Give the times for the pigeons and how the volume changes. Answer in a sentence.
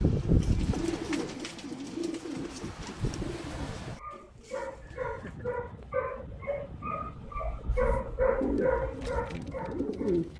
The pigeons can be heard from 0.0 to 5.7 s, getting quieter; and briefly from 7.7 to 10.3 s.